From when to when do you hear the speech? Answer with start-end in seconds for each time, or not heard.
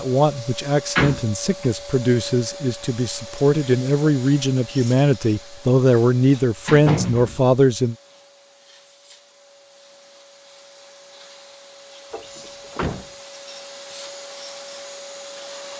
0.0-8.0.